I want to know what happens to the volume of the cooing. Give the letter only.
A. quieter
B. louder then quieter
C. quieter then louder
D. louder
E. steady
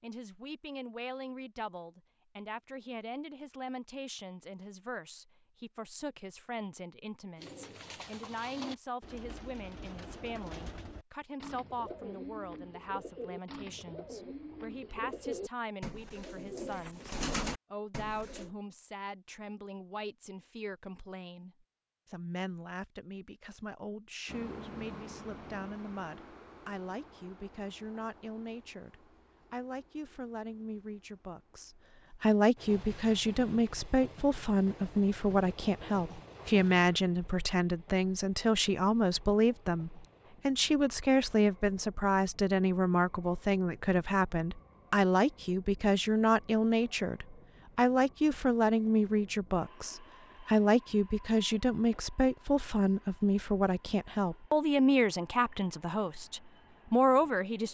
D.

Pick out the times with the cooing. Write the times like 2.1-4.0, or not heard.
7.3-18.5.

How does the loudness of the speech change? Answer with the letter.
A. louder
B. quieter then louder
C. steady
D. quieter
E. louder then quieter
A.